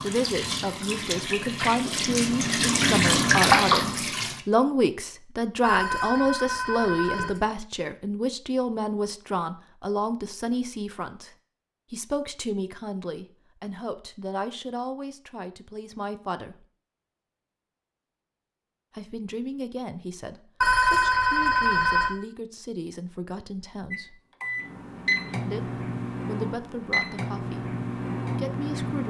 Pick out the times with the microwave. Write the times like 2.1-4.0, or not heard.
23.9-29.0.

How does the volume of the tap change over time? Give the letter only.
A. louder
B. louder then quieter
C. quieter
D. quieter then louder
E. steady
A.